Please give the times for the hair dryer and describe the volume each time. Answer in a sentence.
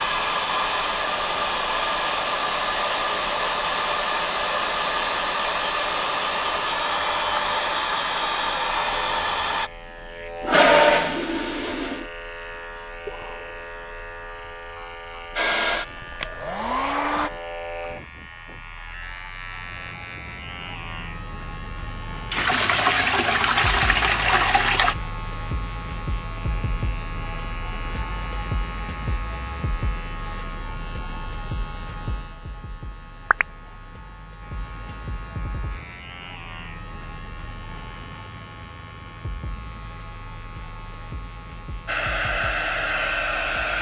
The hair dryer can be heard from 0.0 to 9.7 s, at a steady volume; briefly from 15.3 to 17.3 s; and briefly from 41.9 to 43.7 s.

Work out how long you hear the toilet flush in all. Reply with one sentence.
You can hear the toilet flush for 4 seconds altogether.